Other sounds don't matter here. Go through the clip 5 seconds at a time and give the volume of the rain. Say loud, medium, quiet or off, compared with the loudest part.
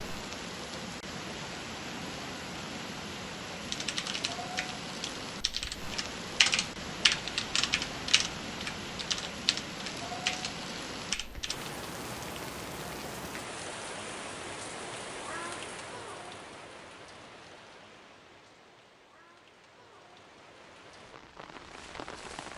loud, loud, loud, medium, medium.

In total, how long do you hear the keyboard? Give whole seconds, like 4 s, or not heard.
8 s.